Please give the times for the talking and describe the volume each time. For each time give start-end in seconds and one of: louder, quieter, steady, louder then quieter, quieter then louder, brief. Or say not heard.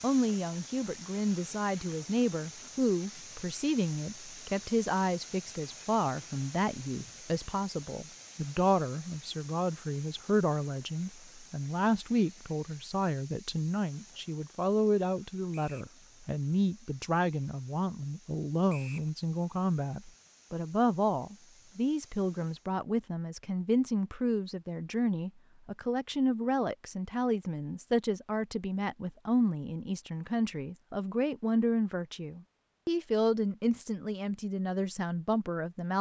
0.0-35.9 steady.